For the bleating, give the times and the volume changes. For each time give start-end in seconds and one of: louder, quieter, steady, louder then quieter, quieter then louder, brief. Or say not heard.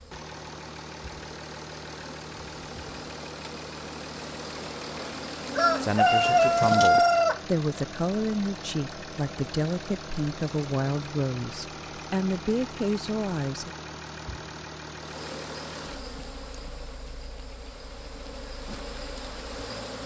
not heard.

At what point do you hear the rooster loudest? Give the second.
7 s.